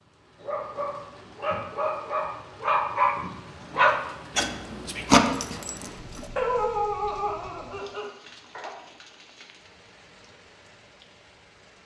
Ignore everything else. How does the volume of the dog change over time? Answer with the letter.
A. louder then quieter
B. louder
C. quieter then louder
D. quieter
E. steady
A.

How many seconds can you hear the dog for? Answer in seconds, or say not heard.
8 s.